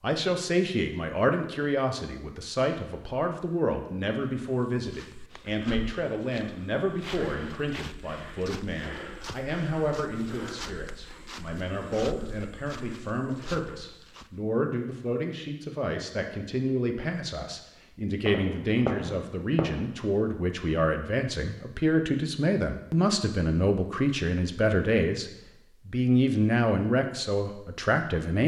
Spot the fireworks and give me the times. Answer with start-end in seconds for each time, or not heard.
18.2-19.8.